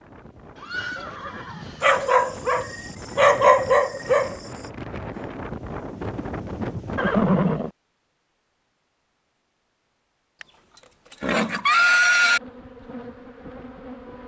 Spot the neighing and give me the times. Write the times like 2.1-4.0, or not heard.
0.6-2.0, 7.0-7.7, 10.4-12.4.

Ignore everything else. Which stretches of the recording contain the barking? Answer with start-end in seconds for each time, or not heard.
1.8-4.4.